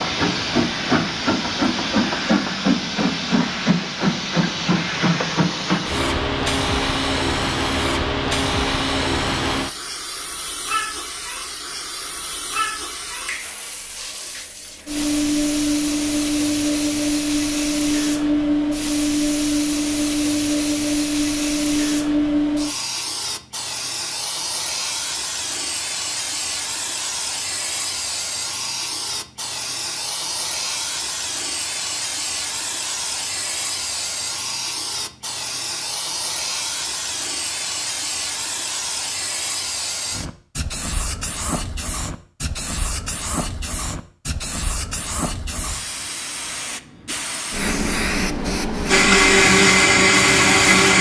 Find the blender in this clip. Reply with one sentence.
You can hear the blender from 48.9 to 50.9 s.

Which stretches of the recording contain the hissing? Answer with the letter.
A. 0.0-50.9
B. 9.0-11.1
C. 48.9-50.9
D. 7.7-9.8
A.